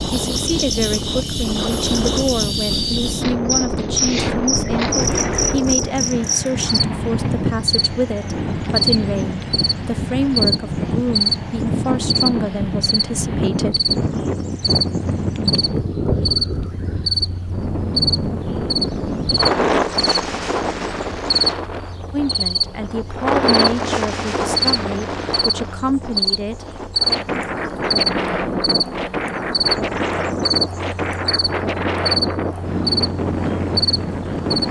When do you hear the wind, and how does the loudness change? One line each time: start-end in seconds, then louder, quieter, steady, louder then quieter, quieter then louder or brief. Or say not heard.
0.0-34.6 steady.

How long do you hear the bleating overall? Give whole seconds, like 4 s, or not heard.
not heard.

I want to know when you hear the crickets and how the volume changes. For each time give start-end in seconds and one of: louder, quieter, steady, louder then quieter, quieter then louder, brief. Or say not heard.
0.0-34.6 steady.